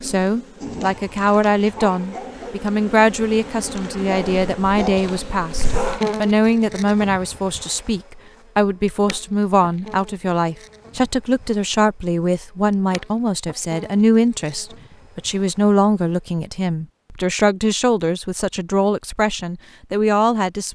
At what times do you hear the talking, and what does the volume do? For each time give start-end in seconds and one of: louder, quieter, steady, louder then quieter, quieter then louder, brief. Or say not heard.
0.0-20.7 steady.